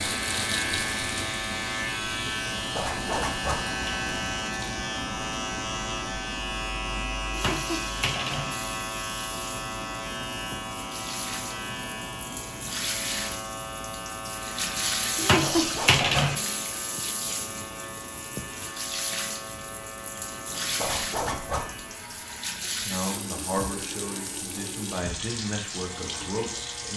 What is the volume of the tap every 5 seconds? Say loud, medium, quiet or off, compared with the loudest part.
medium, medium, medium, loud, medium, medium.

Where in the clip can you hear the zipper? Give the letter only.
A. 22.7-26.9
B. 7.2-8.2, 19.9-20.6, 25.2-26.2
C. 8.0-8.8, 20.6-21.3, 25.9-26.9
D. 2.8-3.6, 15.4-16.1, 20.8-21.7
D.